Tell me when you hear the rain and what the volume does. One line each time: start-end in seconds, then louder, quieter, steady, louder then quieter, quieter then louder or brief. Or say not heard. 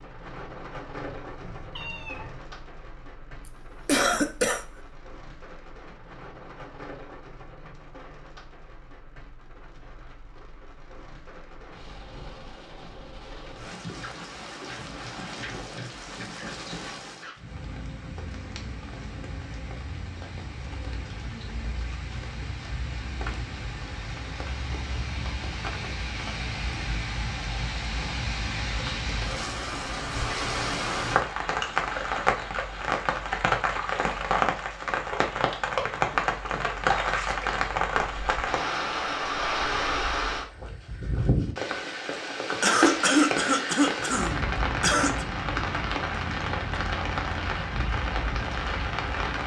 0.0-49.4 louder.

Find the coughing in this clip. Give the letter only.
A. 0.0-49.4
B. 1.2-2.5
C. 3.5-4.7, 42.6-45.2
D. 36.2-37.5
C.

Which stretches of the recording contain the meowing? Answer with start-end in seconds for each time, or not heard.
1.2-2.5.